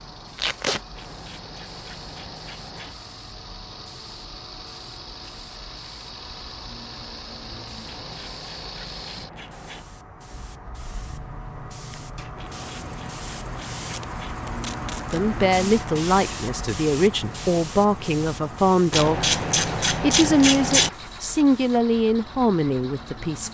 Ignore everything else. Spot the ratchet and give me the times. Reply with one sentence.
You can hear the ratchet from 0.9 to 3.0 s, from 7.8 to 9.8 s, from 12.3 to 14.3 s and from 18.9 to 20.9 s.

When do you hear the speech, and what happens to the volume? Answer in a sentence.
You can hear the speech from 15.1 to 23.4 s, at a steady volume.